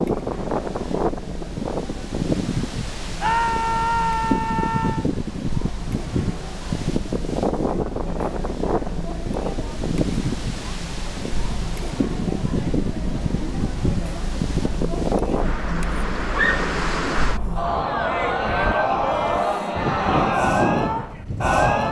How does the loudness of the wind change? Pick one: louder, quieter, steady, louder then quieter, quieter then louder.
steady.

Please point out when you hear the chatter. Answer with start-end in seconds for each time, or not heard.
0.0-21.8.